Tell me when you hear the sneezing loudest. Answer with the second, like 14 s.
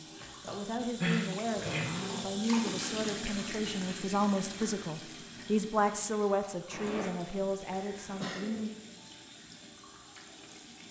1 s.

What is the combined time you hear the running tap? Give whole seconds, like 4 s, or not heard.
11 s.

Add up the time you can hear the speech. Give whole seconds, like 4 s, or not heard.
9 s.